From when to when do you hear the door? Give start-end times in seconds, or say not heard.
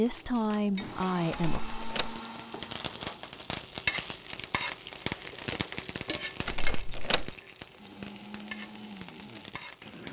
1.3-2.2, 6.5-7.3.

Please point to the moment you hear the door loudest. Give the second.
7 s.